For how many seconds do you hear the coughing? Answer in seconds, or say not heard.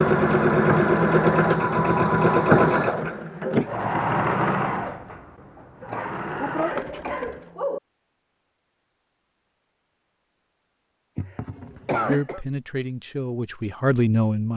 4 s.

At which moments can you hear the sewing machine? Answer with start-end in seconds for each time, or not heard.
0.0-7.5.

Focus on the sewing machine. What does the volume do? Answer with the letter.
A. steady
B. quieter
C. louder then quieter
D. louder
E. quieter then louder
B.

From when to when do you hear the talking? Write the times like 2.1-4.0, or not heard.
12.1-14.5.